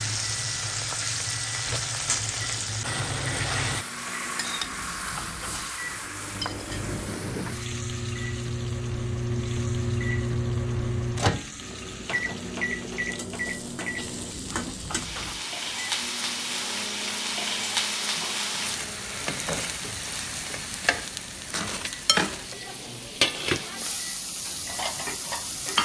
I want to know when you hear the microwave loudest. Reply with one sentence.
The volume of the microwave peaks at 11 seconds.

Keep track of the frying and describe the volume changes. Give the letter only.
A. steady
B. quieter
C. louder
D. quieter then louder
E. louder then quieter
D.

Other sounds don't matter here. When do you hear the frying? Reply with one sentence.
You can hear the frying from 0.0 to 25.8 s.